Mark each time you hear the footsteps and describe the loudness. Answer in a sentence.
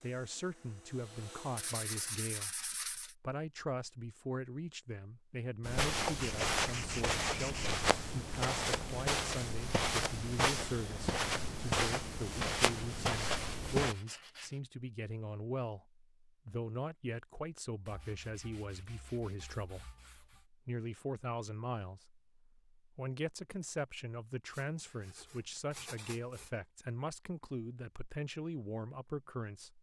You can hear the footsteps from 5.6 to 13.9 s, at a steady volume.